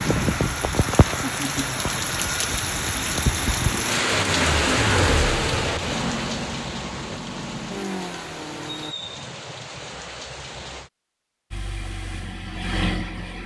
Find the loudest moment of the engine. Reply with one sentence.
The loudest moment of the engine is at 5 seconds.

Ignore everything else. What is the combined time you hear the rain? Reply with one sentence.
You can hear the rain for 11 seconds altogether.